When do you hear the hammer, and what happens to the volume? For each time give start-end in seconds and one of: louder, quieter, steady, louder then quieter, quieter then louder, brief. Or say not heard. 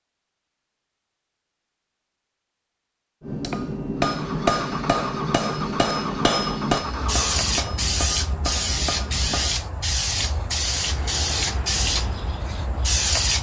3.2-9.6 quieter.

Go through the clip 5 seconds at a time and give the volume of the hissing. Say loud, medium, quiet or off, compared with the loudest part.
off, loud, loud.